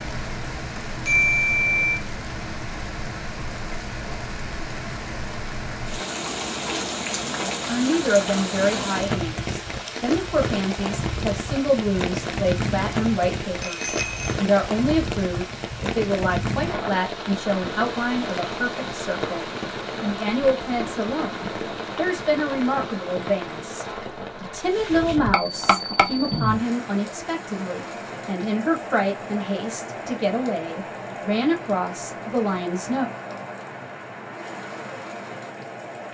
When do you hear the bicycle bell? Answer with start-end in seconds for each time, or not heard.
1.1-1.9, 13.6-14.4, 25.3-26.5.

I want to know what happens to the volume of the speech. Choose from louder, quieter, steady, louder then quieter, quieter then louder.
steady.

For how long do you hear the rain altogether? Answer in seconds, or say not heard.
36 s.